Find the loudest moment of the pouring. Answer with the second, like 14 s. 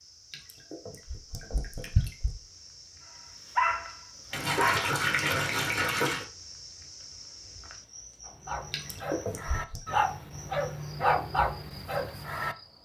5 s.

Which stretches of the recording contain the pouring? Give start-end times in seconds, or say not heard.
0.3-2.3, 4.3-6.2, 8.7-9.8.